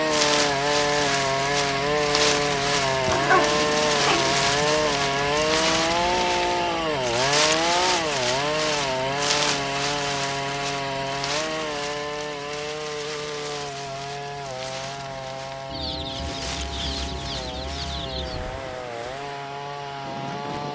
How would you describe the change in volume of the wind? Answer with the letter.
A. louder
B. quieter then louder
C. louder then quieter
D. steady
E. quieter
E.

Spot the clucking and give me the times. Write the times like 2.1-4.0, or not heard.
15.7-18.4.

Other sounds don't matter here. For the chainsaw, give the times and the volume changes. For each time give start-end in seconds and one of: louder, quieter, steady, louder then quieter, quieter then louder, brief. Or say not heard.
0.0-20.6 quieter.